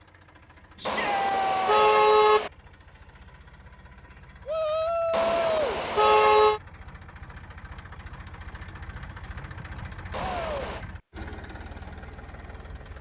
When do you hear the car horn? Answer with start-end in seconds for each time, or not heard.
0.8-2.5, 5.1-6.6, 10.1-10.8.